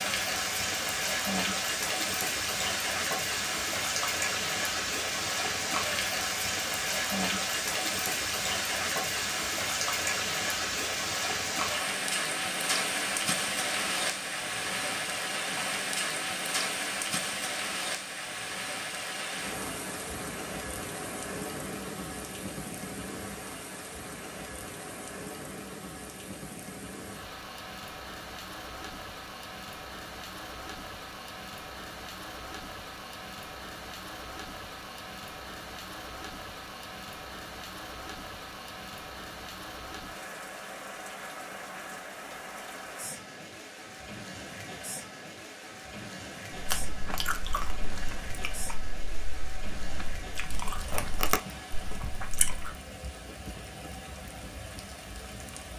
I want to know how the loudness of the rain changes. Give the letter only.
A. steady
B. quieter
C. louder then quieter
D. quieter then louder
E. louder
B.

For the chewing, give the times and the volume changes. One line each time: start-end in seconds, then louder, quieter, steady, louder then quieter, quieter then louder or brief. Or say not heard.
46.5-52.8 quieter then louder.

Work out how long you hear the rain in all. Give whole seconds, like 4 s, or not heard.
56 s.